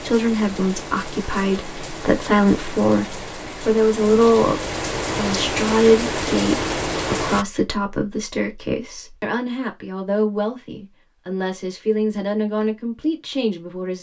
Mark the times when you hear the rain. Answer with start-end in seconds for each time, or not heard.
0.0-7.5.